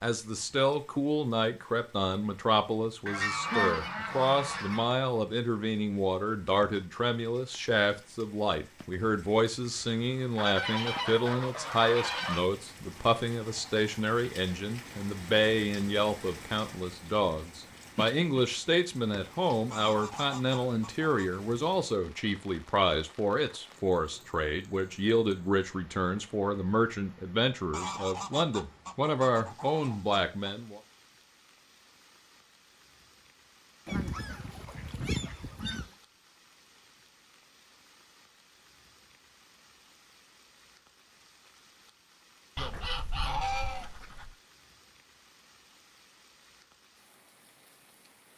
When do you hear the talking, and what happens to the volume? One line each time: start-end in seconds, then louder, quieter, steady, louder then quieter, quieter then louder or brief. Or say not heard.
0.0-30.8 steady.